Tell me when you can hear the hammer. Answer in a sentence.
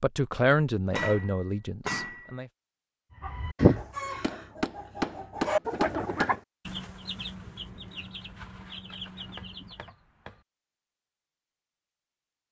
The hammer can be heard from 0.5 to 2.4 s, from 4.2 to 6.3 s and from 8.9 to 10.3 s.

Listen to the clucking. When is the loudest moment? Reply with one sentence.
The volume of the clucking peaks at 4 seconds.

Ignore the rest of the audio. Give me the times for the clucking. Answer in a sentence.
The clucking can be heard from 3.2 to 9.9 s.